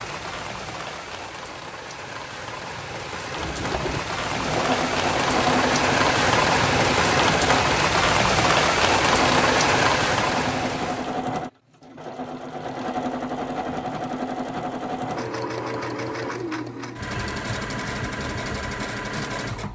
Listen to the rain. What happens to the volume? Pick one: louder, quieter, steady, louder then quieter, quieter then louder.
louder.